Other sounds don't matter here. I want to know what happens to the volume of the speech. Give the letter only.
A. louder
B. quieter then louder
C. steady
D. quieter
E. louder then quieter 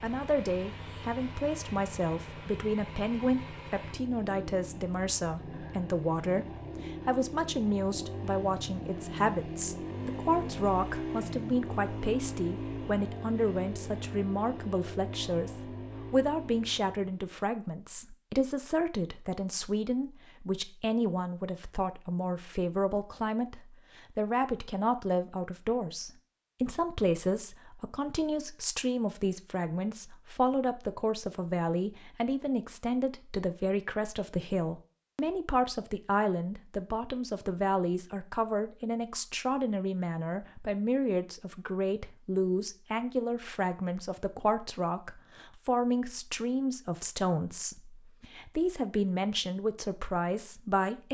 C.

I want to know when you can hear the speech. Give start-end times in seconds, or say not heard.
0.0-51.0.